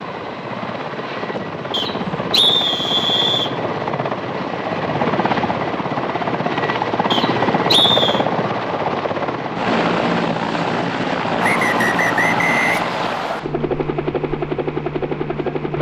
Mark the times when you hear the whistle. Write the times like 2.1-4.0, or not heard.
1.7-3.5, 7.1-8.2, 11.4-13.4.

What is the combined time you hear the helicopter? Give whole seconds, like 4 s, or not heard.
16 s.